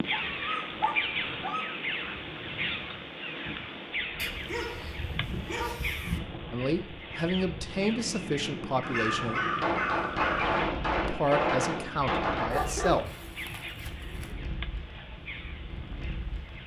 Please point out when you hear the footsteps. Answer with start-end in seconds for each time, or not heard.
not heard.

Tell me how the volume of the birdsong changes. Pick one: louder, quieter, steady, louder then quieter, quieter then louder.
quieter.